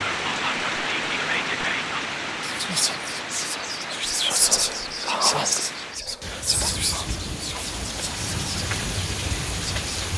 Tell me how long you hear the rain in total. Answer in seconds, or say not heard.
10 s.